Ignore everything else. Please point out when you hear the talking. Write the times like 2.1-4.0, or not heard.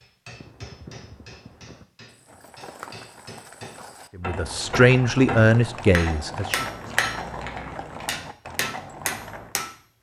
4.2-6.7.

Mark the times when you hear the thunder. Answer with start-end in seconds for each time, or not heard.
not heard.